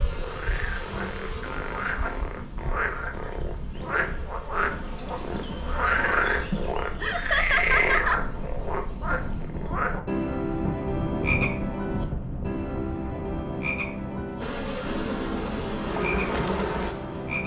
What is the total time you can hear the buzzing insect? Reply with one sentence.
You can hear the buzzing insect for 10 seconds altogether.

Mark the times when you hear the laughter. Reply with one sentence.
You can hear the laughter from 7.0 to 8.2 s.